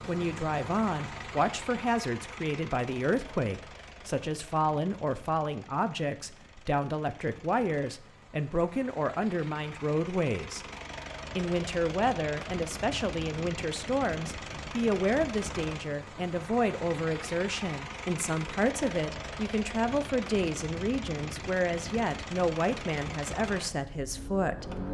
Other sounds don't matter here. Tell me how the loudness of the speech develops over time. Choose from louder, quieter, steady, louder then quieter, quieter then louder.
steady.